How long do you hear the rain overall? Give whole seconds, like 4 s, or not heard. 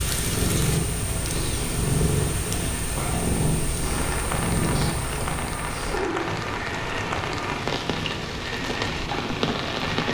10 s.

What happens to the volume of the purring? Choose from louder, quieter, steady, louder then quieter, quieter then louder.
quieter.